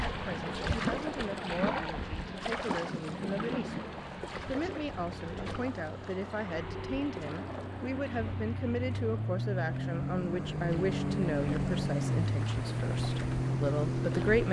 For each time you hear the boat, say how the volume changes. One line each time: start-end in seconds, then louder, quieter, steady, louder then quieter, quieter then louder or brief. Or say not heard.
0.0-14.4 quieter then louder.